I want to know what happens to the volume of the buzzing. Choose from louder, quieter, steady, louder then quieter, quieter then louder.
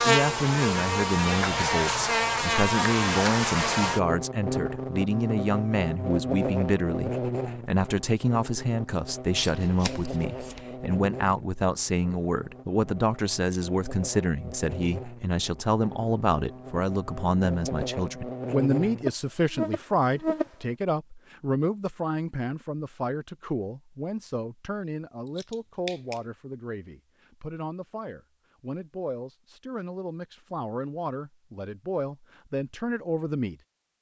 quieter then louder.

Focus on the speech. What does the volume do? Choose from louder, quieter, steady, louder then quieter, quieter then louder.
quieter.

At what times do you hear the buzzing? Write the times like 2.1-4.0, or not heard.
0.0-20.5.